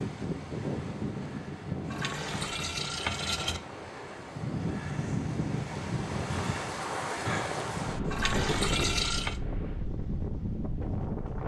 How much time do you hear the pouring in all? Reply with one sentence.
You can hear the pouring for 3 seconds altogether.